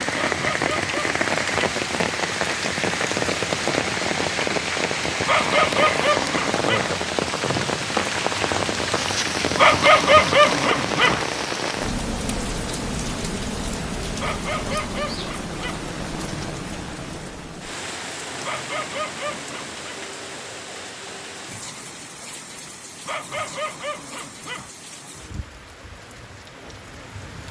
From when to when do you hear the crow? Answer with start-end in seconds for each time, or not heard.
not heard.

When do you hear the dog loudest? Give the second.
10 s.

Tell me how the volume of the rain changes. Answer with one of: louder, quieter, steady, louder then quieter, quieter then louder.
quieter.